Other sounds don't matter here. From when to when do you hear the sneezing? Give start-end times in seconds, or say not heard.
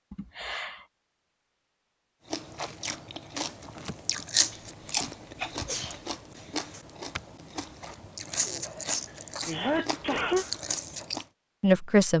0.1-0.8, 4.5-6.0, 9.5-10.4.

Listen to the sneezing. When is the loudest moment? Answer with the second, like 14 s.
10 s.